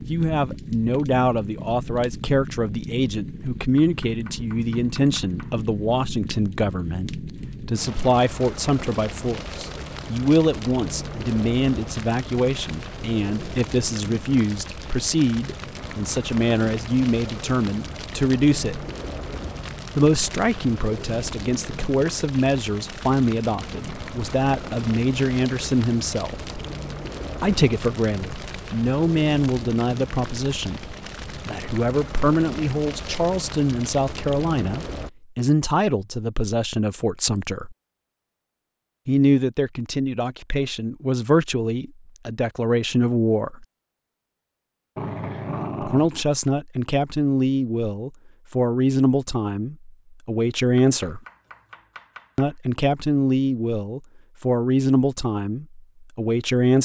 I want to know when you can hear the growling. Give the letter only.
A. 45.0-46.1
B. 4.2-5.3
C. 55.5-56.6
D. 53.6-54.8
A.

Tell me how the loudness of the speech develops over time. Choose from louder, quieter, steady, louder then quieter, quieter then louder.
steady.